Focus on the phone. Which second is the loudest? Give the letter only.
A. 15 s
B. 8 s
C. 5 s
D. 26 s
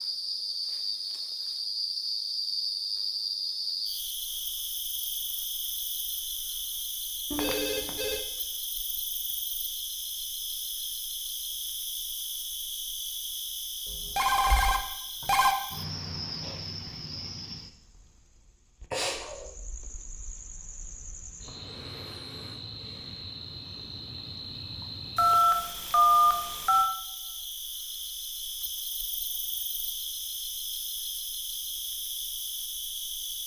D.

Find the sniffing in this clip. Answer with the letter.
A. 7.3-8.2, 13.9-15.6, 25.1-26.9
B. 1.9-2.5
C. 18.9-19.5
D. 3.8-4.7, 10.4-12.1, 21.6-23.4
C.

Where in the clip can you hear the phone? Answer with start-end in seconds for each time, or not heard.
7.3-8.2, 13.9-15.6, 25.1-26.9.